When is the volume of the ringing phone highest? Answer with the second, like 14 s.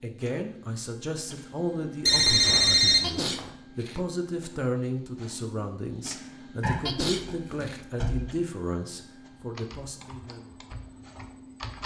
3 s.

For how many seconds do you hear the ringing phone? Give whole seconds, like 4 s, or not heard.
3 s.